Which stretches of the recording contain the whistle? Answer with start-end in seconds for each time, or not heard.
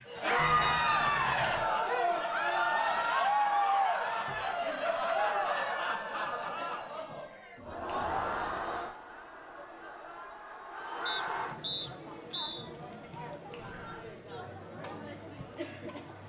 11.1-12.7.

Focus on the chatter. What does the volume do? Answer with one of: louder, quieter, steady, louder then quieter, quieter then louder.
quieter.